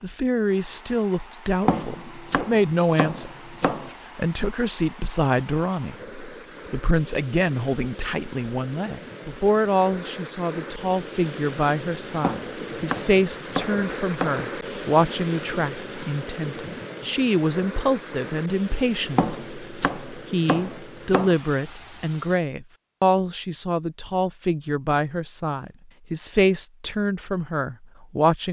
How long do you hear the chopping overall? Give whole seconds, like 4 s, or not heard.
7 s.